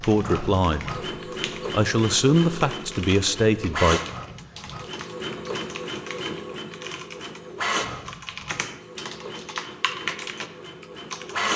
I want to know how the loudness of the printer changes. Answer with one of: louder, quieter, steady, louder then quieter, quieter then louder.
quieter.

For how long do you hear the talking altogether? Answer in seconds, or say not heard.
3 s.